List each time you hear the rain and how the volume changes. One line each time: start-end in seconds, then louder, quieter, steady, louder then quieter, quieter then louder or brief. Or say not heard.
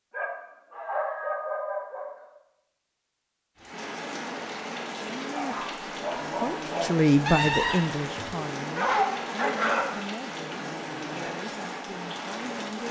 3.5-12.8 steady.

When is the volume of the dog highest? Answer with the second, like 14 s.
9 s.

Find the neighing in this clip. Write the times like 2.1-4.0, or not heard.
7.2-8.6.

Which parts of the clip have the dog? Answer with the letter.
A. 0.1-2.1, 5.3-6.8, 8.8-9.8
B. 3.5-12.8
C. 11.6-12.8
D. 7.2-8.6
A.